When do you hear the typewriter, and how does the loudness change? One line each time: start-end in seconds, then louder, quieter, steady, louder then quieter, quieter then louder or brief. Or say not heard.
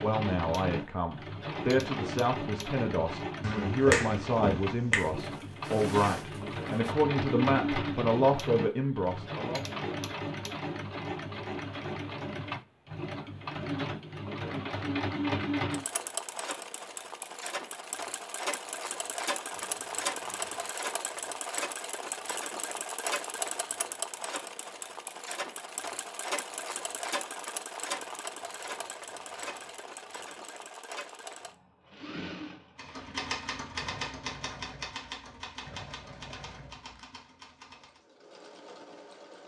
32.8-38.0 quieter.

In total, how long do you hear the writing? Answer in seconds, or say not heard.
not heard.